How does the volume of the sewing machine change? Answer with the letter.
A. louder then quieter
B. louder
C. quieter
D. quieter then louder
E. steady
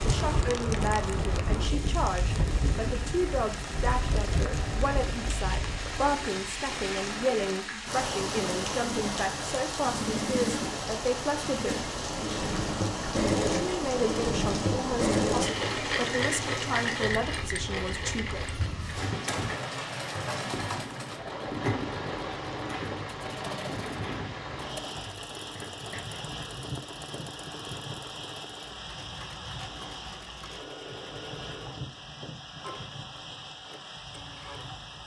A.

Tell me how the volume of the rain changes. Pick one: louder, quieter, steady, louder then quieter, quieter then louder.
quieter.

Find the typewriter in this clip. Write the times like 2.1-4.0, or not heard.
18.9-26.1.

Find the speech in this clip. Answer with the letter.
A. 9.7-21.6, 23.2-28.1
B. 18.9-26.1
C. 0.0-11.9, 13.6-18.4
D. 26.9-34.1
C.